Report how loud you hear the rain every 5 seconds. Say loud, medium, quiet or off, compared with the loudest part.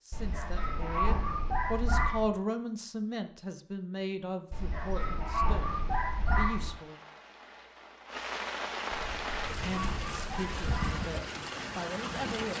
off, loud, loud.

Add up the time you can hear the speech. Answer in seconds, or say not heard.
10 s.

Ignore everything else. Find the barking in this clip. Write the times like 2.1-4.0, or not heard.
0.1-2.3, 4.5-6.7, 8.9-11.1.